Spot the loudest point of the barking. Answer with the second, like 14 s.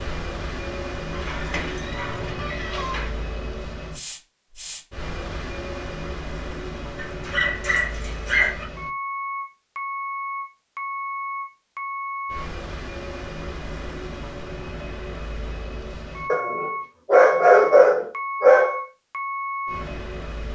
18 s.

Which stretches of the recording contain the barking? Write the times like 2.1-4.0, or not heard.
1.1-3.1, 7.0-8.7, 16.3-18.8.